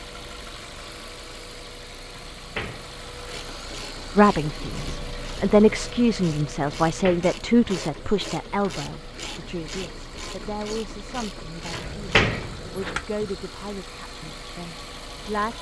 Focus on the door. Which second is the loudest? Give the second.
12 s.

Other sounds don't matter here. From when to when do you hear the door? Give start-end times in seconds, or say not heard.
2.1-3.4, 6.8-7.2, 11.7-13.0.